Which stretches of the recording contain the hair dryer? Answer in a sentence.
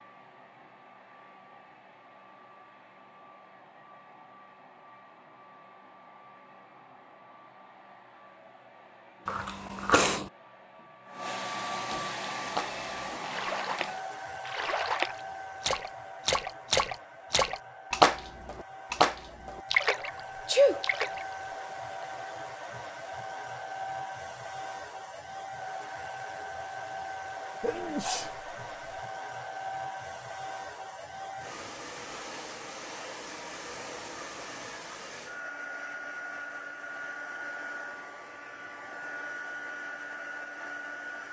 The hair dryer can be heard from 0.0 to 41.2 s.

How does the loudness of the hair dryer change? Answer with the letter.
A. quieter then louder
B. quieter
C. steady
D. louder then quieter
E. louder
E.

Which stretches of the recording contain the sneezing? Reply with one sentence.
You can hear the sneezing from 9.2 to 10.2 s, from 20.4 to 20.9 s and from 27.6 to 29.0 s.